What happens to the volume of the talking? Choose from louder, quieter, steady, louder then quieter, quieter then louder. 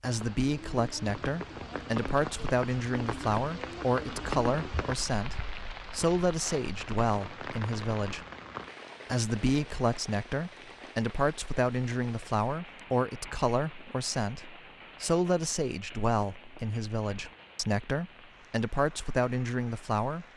steady.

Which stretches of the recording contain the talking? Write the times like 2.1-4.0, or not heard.
0.0-8.2, 9.1-20.2.